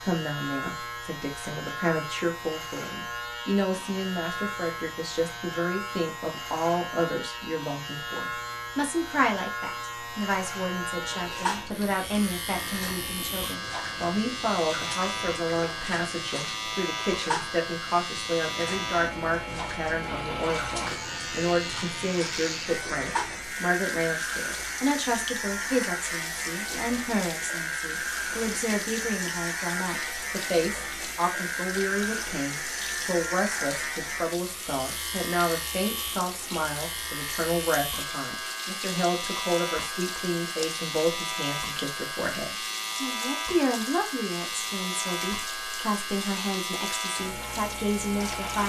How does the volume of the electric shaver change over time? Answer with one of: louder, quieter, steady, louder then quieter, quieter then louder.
steady.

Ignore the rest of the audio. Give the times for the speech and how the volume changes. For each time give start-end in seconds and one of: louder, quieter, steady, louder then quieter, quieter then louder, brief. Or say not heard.
0.0-48.6 steady.